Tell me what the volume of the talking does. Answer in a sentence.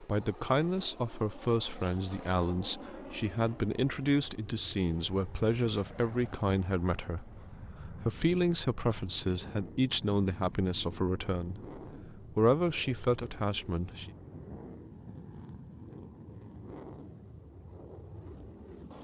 The volume of the talking stays about the same.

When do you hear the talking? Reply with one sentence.
The talking can be heard from 0.0 to 14.1 s.